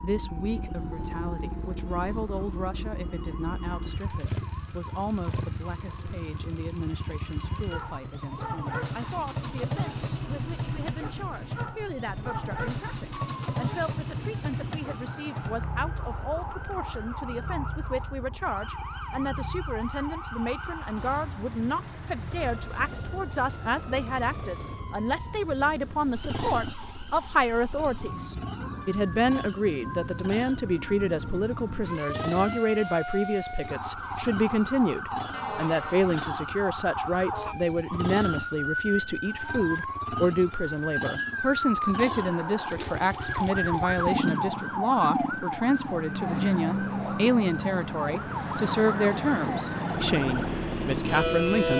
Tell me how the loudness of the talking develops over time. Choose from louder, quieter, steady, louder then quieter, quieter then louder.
louder.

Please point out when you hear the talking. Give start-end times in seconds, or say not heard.
0.0-51.7.